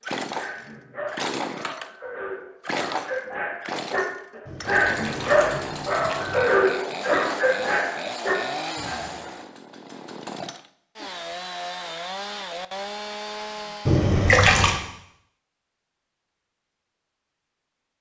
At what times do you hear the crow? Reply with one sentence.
The crow can't be heard in this clip.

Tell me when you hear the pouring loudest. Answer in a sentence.
The volume of the pouring peaks at 14 seconds.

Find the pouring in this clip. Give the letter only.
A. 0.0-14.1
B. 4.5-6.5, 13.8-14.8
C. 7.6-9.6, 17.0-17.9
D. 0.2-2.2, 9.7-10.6
B.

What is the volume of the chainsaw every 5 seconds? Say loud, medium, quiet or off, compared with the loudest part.
loud, loud, loud, off.